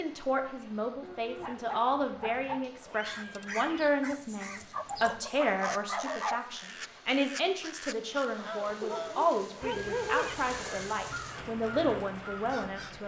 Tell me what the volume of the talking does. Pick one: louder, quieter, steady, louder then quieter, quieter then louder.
steady.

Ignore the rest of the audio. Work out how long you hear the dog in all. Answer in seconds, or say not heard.
5 s.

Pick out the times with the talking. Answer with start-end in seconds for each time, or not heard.
0.0-13.0.